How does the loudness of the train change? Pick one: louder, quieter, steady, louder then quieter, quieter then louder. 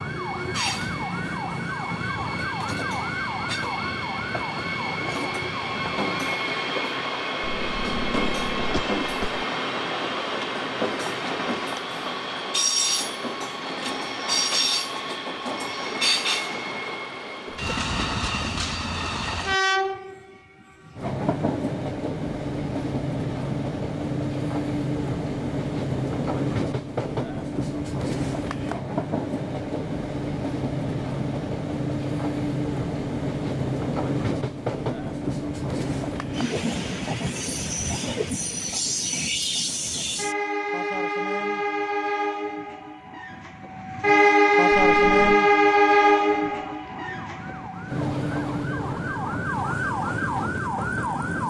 louder.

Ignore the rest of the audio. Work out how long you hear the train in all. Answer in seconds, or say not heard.
51 s.